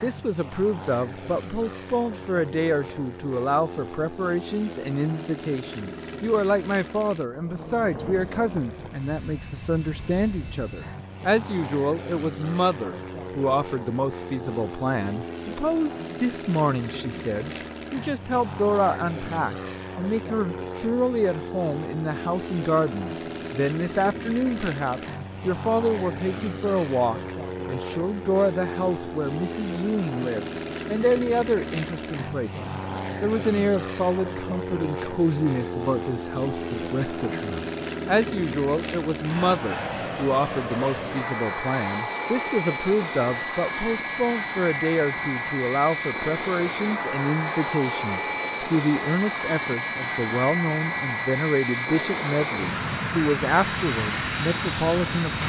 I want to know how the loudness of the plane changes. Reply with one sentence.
The loudness of the plane goes up.